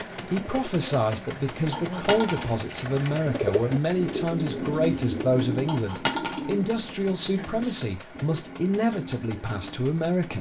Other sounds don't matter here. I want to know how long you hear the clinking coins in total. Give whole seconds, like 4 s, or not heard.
2 s.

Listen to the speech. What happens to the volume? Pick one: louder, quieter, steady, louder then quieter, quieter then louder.
steady.